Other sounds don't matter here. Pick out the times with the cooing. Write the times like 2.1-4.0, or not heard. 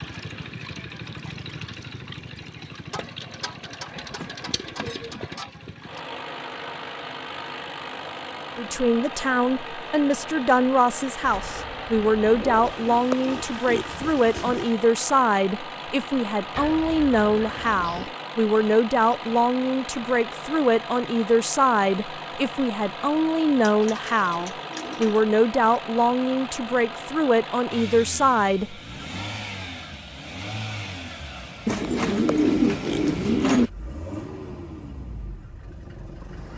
3.9-5.2, 11.2-12.8, 16.6-18.1, 23.6-25.2, 31.6-33.7.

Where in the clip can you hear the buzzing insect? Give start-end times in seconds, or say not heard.
not heard.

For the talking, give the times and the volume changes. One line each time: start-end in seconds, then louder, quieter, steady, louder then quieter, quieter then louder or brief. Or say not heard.
8.6-28.8 steady.